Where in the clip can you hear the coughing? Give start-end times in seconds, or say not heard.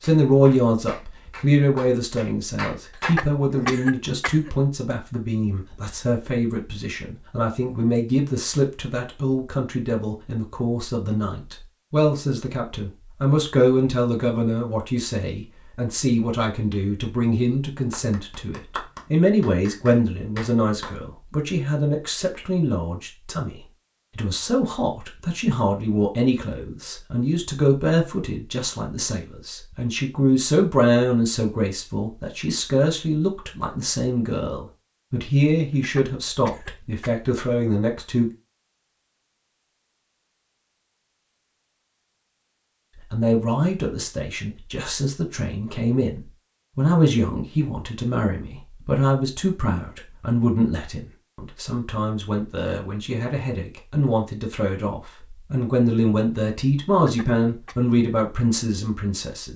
3.0-4.5, 35.7-37.3, 57.0-57.8.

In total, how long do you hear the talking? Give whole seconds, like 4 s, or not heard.
55 s.